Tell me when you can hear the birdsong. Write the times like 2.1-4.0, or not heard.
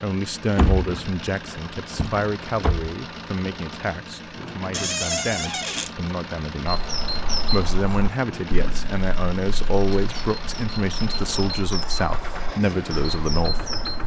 6.7-14.0.